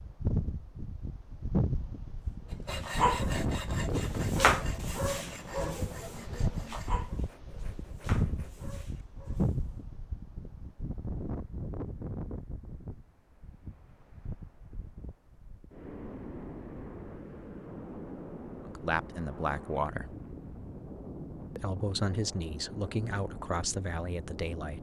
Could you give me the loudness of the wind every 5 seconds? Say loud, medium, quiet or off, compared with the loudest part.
loud, loud, medium, medium, medium.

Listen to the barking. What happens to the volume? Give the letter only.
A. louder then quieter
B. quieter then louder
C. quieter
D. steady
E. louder
A.